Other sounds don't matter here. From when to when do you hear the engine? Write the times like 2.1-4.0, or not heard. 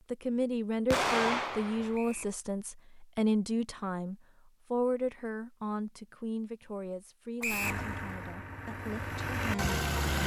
7.6-10.2.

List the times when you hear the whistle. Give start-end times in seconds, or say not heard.
1.9-2.4, 7.4-7.8.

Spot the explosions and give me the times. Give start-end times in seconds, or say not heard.
0.9-1.9.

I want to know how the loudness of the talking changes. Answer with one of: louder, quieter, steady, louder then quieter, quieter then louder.
quieter.